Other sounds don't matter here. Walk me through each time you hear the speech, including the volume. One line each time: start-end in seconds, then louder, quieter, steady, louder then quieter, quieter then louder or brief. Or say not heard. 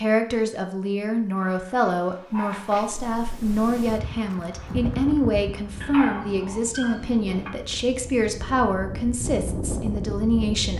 0.0-10.7 steady.